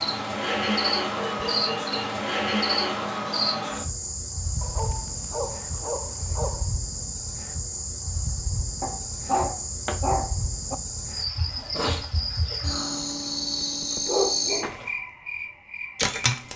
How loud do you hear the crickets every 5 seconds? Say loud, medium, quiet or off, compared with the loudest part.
loud, medium, loud, loud.